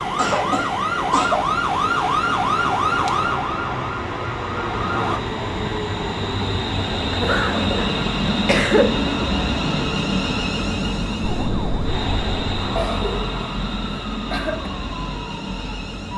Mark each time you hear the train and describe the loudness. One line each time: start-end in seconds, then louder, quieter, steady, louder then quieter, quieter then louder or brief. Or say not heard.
0.0-16.1 louder then quieter.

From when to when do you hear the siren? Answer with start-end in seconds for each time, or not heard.
0.0-5.2, 11.2-16.1.